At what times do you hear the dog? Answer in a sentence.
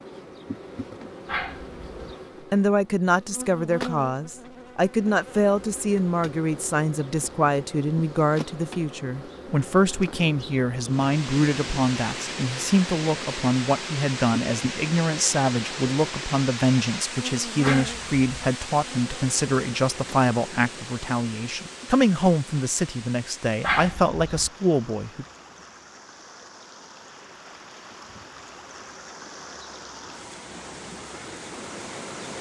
You can hear the dog from 1.2 to 2.1 s, from 17.6 to 18.2 s and from 23.6 to 24.5 s.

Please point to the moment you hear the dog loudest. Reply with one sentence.
The volume of the dog peaks at 24 seconds.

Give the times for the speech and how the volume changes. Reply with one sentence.
You can hear the speech from 2.5 to 25.2 s, at a steady volume.